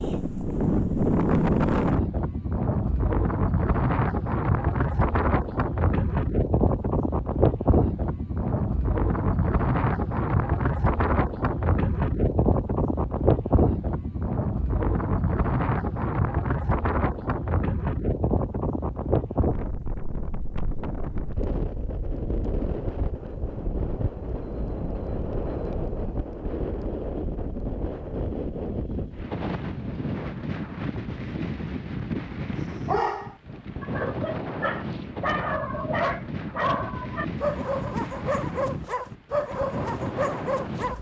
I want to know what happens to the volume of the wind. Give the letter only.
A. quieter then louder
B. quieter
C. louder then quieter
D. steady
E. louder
B.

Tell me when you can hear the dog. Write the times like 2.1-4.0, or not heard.
32.9-40.9.